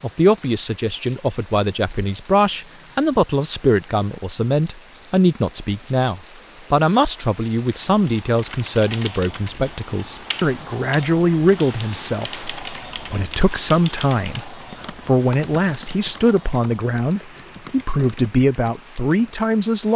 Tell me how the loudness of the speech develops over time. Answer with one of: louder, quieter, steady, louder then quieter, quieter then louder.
steady.